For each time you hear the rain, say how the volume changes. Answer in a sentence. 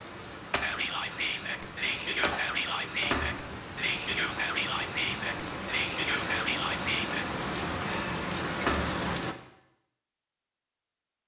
You can hear the rain from 0.0 to 9.3 s, getting louder.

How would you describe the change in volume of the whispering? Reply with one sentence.
The volume of the whispering stays about the same.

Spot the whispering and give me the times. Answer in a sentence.
The whispering can be heard from 0.6 to 7.2 s.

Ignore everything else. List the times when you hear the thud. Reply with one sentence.
The thud can be heard from 3.1 to 3.5 s and from 8.7 to 9.1 s.